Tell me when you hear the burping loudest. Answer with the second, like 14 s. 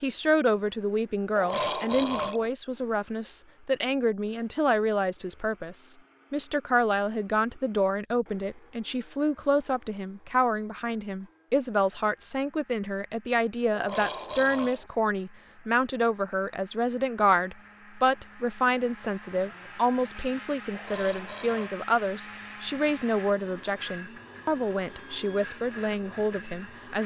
2 s.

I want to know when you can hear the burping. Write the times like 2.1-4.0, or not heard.
1.4-2.5, 13.7-14.9, 20.7-21.8.